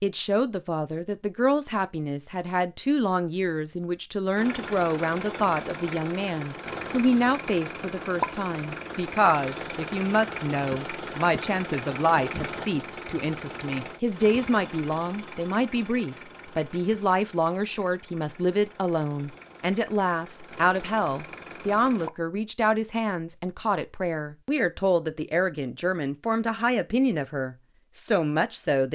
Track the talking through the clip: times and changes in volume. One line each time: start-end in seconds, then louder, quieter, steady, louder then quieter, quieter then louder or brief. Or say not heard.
0.0-28.8 steady.